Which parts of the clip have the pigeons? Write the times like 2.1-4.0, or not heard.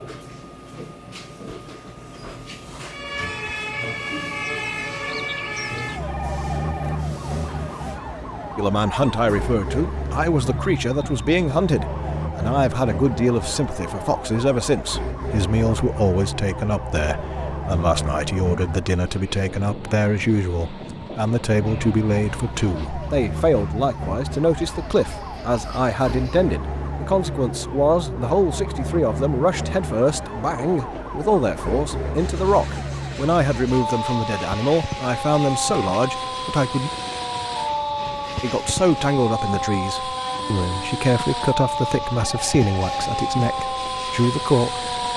not heard.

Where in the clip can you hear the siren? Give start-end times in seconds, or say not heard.
2.9-19.0, 21.4-45.1.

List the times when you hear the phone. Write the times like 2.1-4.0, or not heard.
6.0-7.0, 42.1-43.0.